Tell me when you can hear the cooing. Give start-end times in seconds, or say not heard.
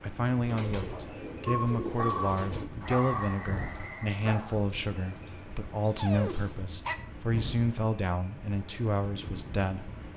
0.5-2.7.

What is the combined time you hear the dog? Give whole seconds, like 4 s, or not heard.
5 s.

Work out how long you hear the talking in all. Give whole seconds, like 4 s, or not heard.
10 s.